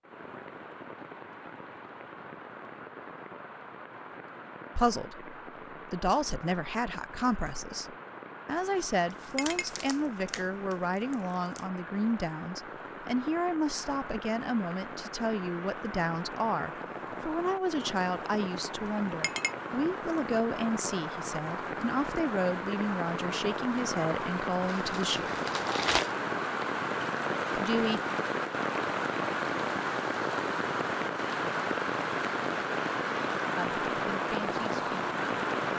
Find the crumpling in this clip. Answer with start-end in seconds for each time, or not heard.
9.1-11.7, 24.6-26.1.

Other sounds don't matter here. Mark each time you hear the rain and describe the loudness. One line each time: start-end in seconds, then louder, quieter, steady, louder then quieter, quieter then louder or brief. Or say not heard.
0.0-35.7 louder.